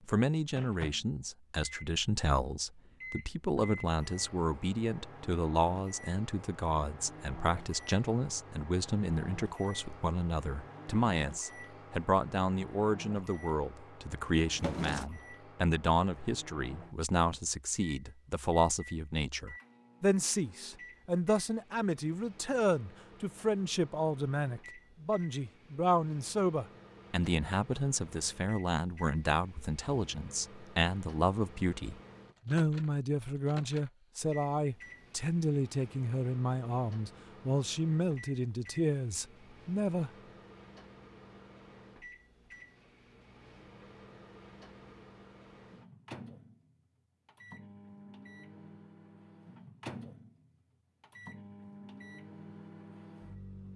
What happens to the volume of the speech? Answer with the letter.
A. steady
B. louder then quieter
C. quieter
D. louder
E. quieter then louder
A.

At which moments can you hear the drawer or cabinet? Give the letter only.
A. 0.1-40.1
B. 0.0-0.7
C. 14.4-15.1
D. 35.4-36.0
C.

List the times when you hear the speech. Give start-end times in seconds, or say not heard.
0.1-40.1.